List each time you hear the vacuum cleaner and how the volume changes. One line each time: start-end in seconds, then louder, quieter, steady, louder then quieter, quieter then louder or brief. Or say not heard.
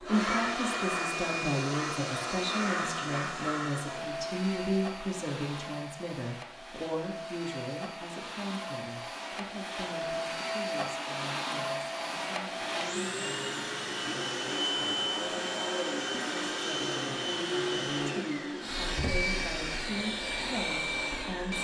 0.0-21.5 quieter then louder.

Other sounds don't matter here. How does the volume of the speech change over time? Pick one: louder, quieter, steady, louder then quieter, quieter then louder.
quieter then louder.